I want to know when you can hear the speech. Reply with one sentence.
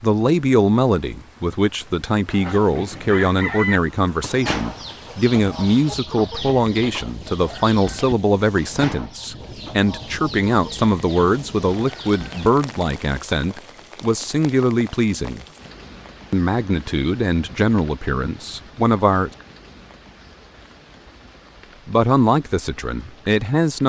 You can hear the speech from 0.0 to 15.4 s, from 16.3 to 19.3 s and from 21.9 to 23.8 s.